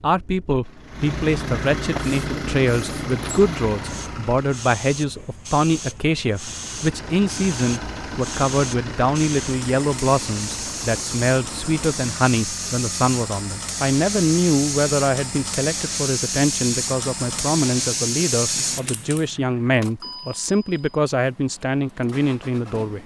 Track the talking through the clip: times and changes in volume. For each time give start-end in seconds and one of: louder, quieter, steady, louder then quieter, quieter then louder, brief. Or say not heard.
0.0-23.0 steady.